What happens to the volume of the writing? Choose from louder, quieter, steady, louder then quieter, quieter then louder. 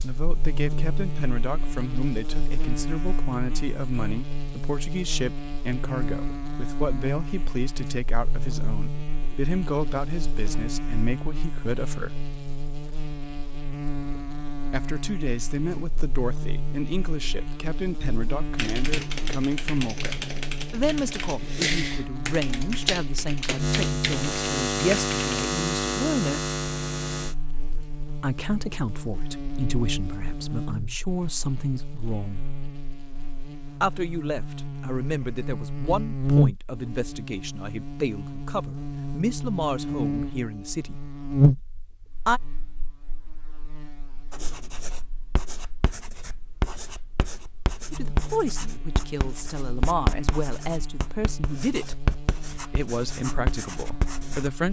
louder.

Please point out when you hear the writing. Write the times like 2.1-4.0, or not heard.
44.3-54.5.